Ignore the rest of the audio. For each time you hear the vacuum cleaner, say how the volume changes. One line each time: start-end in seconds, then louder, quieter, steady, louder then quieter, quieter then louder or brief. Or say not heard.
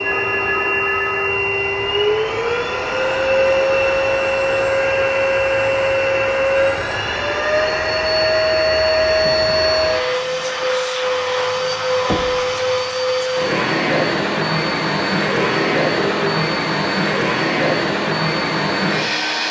0.0-19.4 steady.